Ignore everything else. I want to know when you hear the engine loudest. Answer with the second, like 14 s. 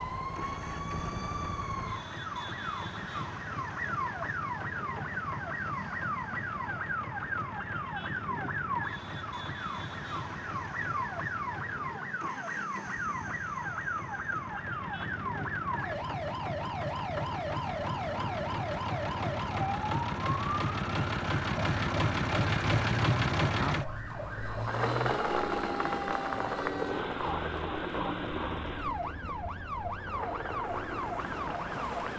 23 s.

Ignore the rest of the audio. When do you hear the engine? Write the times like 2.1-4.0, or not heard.
0.1-32.1.